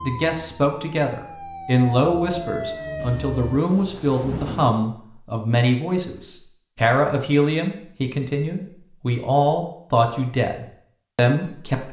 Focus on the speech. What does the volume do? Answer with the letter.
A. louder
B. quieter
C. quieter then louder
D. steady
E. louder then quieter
D.